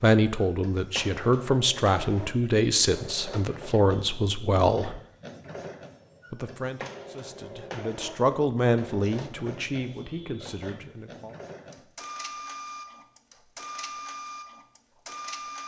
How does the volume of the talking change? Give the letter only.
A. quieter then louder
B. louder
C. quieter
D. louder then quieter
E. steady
C.